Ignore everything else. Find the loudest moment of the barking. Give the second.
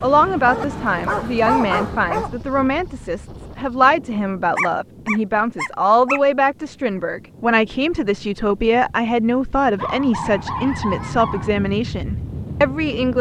2 s.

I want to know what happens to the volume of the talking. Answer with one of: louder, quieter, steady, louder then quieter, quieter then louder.
steady.